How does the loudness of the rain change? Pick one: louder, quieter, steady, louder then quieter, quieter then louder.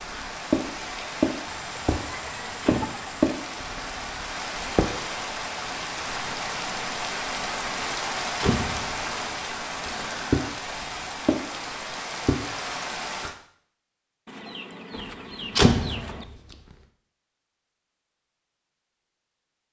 steady.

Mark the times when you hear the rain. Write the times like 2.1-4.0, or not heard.
0.0-13.3.